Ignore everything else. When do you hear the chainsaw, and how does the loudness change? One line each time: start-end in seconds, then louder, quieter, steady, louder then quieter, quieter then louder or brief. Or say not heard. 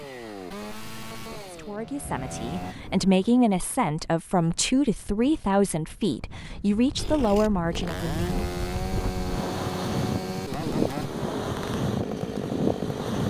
0.0-2.8 brief
7.0-13.2 steady.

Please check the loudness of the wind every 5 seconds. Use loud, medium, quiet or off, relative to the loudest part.
quiet, medium, loud.